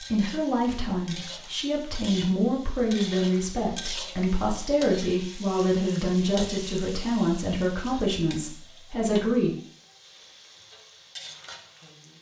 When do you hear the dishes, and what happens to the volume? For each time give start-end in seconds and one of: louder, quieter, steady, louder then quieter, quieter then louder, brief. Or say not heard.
not heard.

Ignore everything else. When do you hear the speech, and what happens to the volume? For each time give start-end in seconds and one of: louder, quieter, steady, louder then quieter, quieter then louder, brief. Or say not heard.
0.0-9.6 steady.